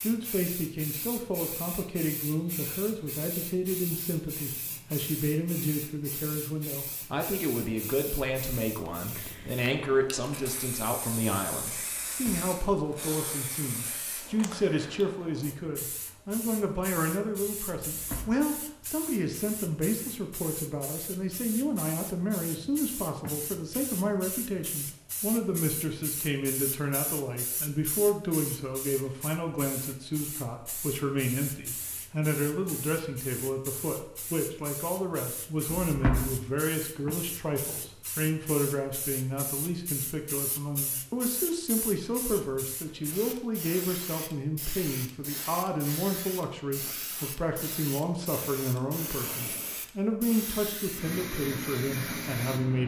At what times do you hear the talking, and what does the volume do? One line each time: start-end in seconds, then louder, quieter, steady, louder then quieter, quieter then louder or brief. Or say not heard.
0.0-52.8 steady.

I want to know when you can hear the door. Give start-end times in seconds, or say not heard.
11.9-12.5, 17.9-18.4, 35.6-36.4.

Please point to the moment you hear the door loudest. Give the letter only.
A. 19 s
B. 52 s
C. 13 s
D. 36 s
D.